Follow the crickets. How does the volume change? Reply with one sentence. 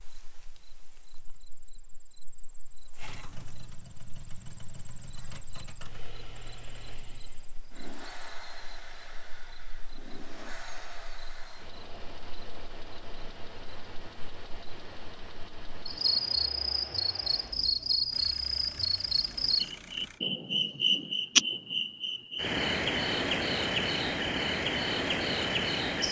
The volume of the crickets goes up.